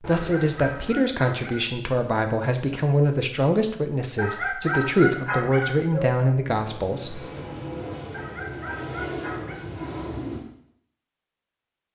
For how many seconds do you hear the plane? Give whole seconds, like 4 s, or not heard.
4 s.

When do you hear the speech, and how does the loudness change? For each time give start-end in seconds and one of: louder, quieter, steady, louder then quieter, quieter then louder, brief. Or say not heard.
0.0-7.2 steady.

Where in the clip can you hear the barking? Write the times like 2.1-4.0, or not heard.
0.3-1.6, 4.2-6.2, 8.1-9.7.